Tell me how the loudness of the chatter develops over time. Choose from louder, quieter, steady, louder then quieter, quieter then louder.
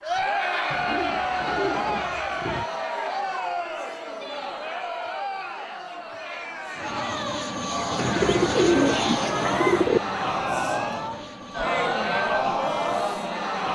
quieter then louder.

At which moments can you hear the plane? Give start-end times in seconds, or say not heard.
6.7-13.5.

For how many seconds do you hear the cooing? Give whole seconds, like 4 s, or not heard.
4 s.